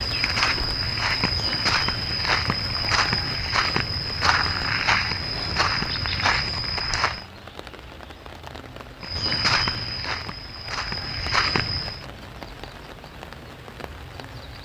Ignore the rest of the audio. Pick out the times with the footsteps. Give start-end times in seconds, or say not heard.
0.0-7.2, 9.0-12.1.